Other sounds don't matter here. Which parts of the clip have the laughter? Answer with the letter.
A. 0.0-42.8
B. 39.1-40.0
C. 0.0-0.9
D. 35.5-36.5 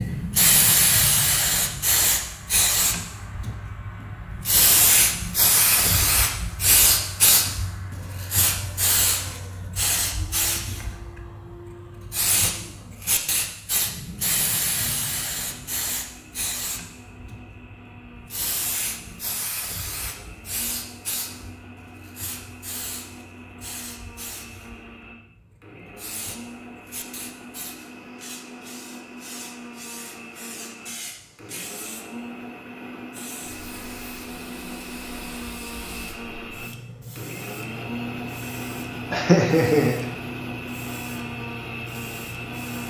B.